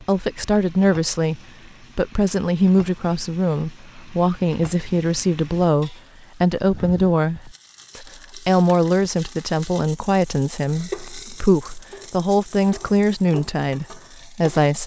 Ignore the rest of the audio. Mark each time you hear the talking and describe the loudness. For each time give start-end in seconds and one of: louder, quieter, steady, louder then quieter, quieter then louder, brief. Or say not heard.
0.0-14.8 steady.